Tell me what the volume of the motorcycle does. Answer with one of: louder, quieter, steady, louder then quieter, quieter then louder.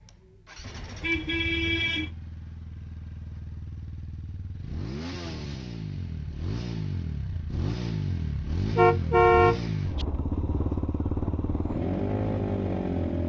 louder.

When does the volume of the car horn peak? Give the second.
9 s.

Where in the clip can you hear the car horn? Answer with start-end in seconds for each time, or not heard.
0.6-2.1, 8.8-10.1.